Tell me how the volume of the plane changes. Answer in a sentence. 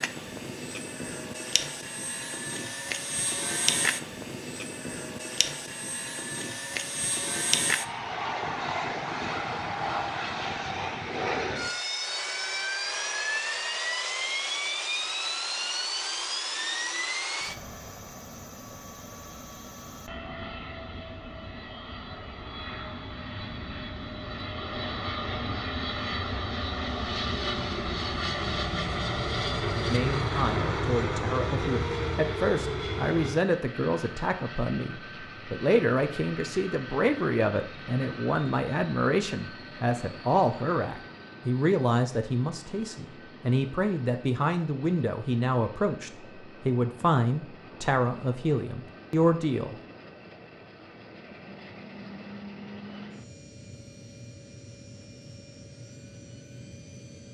The volume of the plane goes down.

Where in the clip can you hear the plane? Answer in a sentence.
You can hear the plane from 0.0 to 57.3 s.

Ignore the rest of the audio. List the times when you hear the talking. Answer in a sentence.
The talking can be heard from 29.9 to 49.8 s.